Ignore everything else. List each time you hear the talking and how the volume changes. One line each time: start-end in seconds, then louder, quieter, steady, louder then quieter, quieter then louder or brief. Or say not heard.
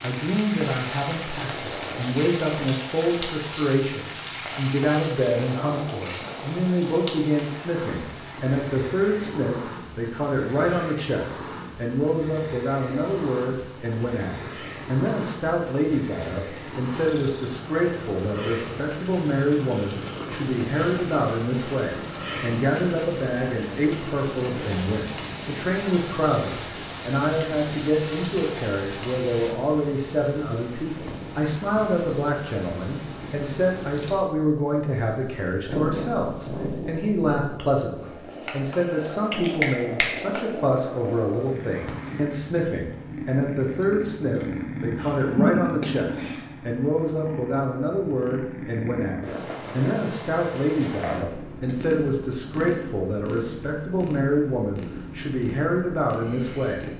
0.0-56.9 steady.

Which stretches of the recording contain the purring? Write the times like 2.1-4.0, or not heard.
0.0-56.9.